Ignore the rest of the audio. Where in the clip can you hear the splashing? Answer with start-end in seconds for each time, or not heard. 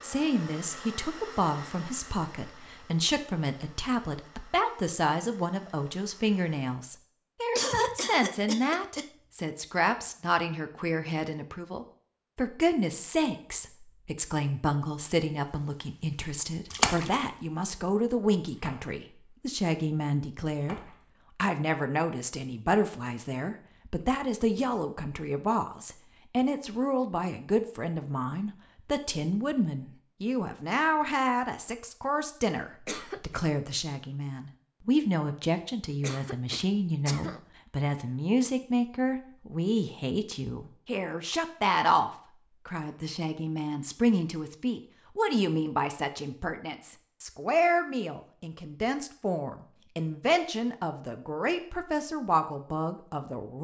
16.7-17.2, 18.5-19.0, 20.6-21.2.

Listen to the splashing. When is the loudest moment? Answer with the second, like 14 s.
17 s.